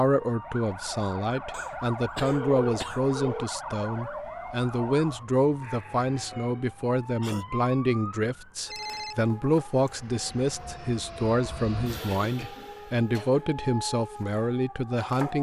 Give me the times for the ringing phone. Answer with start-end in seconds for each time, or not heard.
2.2-3.5, 8.7-9.9.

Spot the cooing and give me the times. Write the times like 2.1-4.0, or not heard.
not heard.